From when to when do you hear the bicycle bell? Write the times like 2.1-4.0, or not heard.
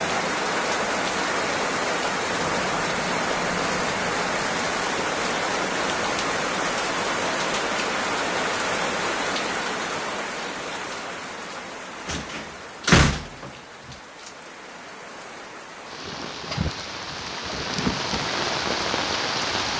not heard.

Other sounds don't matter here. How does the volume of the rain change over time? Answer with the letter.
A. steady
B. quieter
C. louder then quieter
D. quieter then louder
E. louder
D.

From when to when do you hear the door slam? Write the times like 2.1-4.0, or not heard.
12.1-13.5.